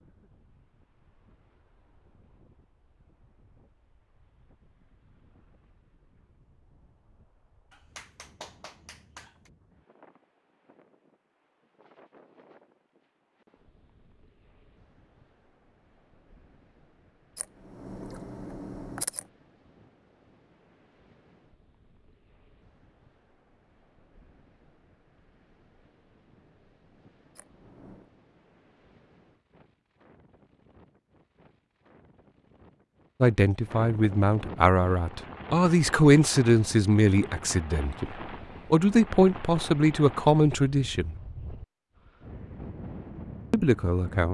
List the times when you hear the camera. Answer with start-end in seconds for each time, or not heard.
17.4-19.2, 27.4-28.1.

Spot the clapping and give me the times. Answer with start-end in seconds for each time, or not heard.
7.7-9.5.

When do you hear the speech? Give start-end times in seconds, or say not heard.
33.2-41.1, 43.5-44.2.